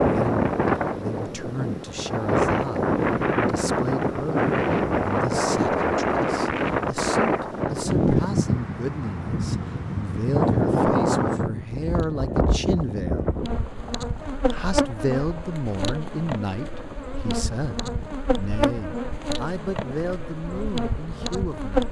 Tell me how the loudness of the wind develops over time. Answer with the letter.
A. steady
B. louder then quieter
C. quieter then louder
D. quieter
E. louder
D.